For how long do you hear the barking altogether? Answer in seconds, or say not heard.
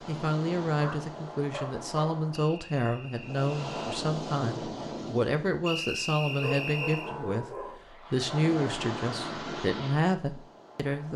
3 s.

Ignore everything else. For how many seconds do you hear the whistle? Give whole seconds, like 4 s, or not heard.
3 s.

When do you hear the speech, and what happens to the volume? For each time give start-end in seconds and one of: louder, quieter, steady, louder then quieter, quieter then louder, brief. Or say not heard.
0.1-11.1 steady.